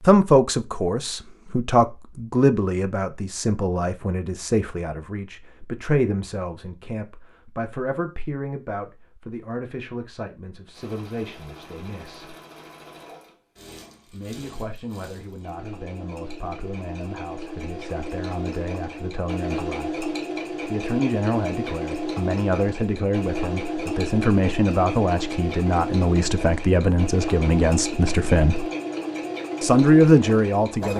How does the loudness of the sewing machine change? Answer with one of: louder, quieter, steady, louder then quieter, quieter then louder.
louder.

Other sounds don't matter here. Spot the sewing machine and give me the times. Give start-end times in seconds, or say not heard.
10.7-30.9.